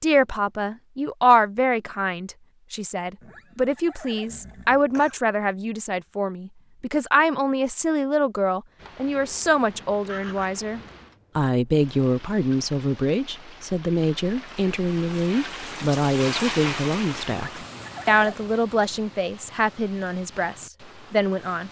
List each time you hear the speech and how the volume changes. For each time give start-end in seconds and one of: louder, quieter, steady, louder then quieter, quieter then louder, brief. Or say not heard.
0.0-21.6 steady.